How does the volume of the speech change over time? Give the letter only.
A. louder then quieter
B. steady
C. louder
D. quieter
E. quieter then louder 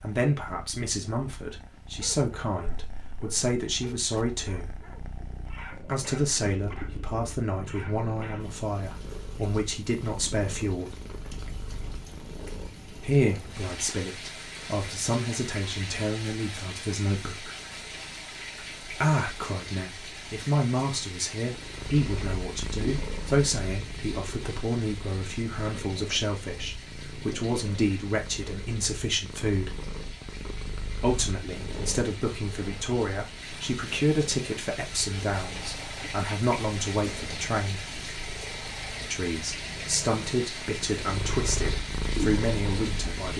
B.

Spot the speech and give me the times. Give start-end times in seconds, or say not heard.
0.0-4.7, 5.8-10.9, 12.9-17.6, 18.9-29.8, 30.9-37.9, 39.1-43.3.